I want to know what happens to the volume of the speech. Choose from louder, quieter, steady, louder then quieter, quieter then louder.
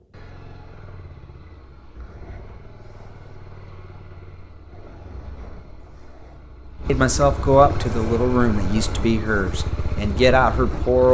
quieter then louder.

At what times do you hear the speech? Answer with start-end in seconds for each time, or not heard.
6.8-11.0.